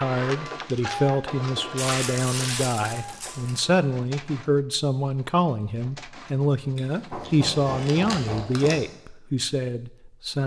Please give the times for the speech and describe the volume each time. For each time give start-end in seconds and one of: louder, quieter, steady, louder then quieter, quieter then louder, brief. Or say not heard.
0.0-10.4 steady.